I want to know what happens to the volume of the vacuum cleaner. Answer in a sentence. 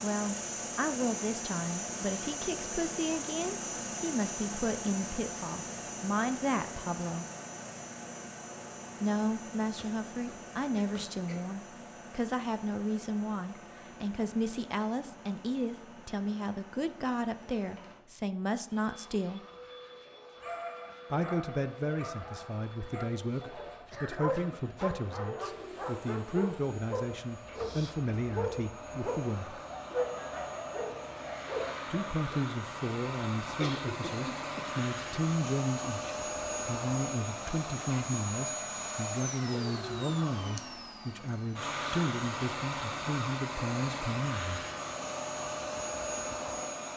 The volume of the vacuum cleaner goes down, then up.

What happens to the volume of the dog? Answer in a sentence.
The volume of the dog goes up.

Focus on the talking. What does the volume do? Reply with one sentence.
The volume of the talking stays about the same.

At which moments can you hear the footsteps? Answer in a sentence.
The footsteps can't be heard in this clip.